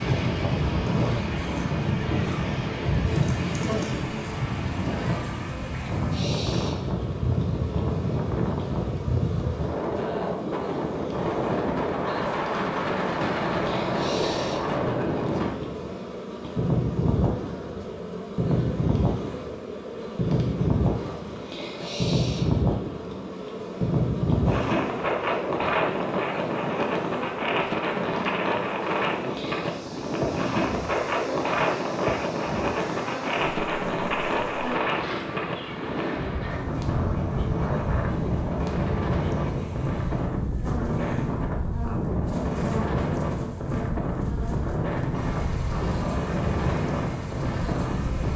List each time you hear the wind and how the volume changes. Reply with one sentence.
The wind can be heard from 0.0 to 48.3 s, at a steady volume.